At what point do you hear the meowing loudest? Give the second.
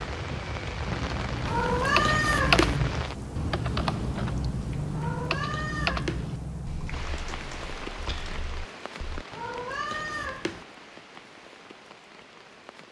2 s.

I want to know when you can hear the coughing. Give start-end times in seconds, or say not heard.
not heard.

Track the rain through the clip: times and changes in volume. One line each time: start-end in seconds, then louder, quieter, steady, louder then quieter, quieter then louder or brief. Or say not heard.
0.0-12.8 quieter.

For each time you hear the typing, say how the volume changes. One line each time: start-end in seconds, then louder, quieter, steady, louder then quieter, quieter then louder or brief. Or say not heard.
0.8-9.2 quieter.